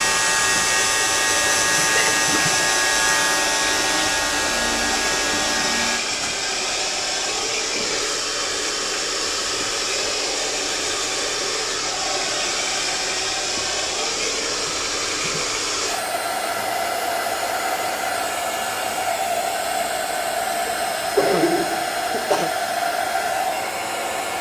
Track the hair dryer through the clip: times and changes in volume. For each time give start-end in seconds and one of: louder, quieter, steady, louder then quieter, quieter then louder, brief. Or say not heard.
0.0-24.3 steady.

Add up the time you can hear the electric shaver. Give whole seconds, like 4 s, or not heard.
6 s.